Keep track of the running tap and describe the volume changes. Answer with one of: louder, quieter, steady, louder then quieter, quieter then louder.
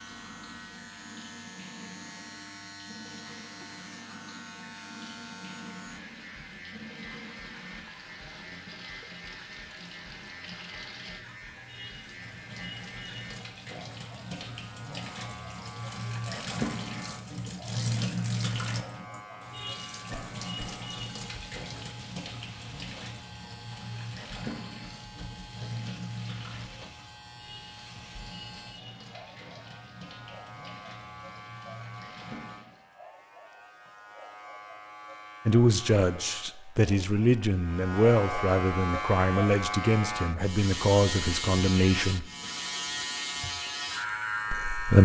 louder then quieter.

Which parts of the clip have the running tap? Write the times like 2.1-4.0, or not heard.
0.0-32.9.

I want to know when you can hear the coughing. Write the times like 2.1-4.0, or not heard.
20.1-20.7.